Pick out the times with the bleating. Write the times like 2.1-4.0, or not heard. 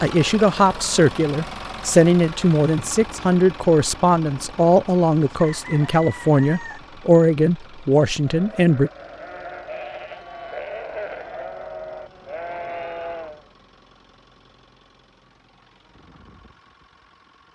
7.9-13.5.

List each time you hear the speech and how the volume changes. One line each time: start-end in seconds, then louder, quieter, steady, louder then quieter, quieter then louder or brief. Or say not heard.
0.0-8.9 steady.